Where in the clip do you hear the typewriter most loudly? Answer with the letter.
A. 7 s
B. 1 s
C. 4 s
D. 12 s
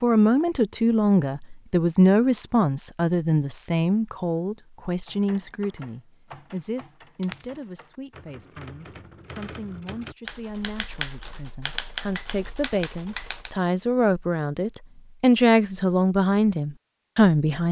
D.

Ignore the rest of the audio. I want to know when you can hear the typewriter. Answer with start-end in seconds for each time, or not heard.
5.0-13.6.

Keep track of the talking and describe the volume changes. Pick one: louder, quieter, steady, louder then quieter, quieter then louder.
quieter then louder.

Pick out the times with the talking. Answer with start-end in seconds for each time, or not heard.
0.0-17.6.